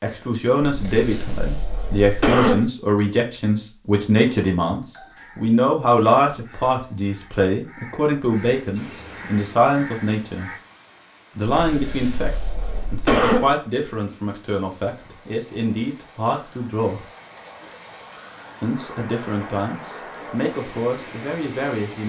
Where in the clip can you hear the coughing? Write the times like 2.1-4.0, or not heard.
0.6-2.6, 11.5-13.4.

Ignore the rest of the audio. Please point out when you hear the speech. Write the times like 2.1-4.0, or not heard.
0.0-10.5, 11.3-17.1, 18.6-22.0.